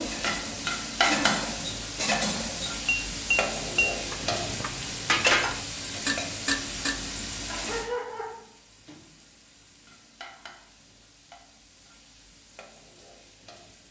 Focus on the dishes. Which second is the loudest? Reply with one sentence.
The volume of the dishes peaks at 5 seconds.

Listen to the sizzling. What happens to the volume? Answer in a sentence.
The loudness of the sizzling goes down.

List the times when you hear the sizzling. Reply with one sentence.
You can hear the sizzling from 0.0 to 13.8 s.